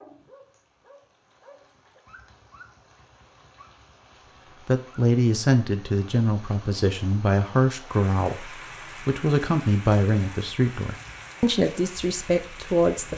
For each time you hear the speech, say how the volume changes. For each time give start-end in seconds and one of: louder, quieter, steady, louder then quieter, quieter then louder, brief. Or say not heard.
4.7-13.1 steady.